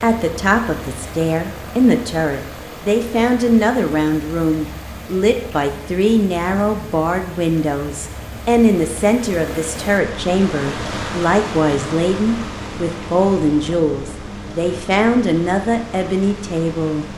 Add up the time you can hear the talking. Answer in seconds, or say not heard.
17 s.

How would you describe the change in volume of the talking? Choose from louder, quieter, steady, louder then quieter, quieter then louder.
steady.